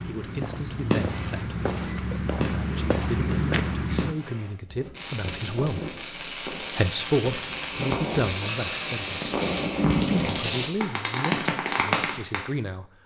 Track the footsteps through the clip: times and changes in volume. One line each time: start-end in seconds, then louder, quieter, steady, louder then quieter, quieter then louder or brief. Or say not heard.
0.0-4.2 louder.